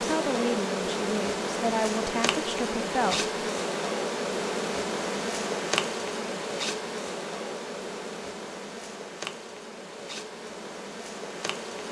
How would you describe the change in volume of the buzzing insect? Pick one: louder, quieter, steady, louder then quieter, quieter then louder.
quieter.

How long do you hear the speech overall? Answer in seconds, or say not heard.
3 s.